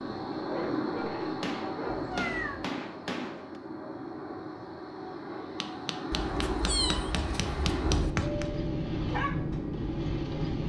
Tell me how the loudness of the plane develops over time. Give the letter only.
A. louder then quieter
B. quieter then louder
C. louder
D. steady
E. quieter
B.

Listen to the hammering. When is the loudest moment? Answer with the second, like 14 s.
8 s.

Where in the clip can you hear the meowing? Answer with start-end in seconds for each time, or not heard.
1.9-2.6, 6.1-8.2.